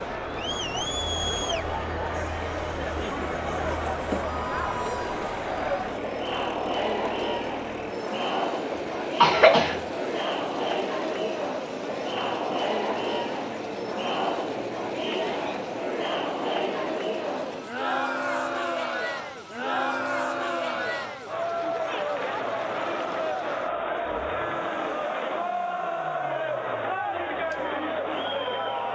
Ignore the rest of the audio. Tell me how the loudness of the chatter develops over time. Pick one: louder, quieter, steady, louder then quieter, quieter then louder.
steady.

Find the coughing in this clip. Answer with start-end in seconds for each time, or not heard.
8.7-9.8.